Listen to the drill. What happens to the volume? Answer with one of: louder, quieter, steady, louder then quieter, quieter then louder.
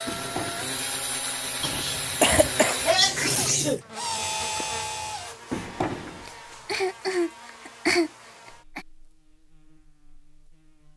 steady.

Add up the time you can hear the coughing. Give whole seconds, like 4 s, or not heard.
5 s.